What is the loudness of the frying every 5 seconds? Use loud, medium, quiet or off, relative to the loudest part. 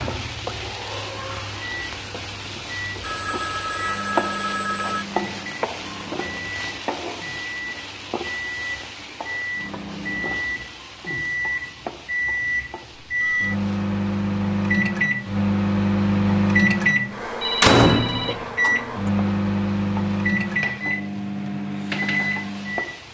loud, loud, medium, medium, medium.